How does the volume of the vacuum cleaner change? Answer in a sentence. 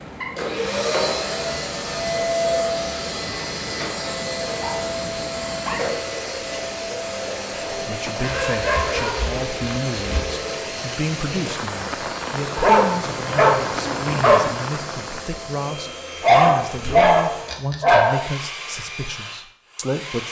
The loudness of the vacuum cleaner goes down.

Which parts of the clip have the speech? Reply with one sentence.
The speech can be heard from 7.8 to 20.2 s.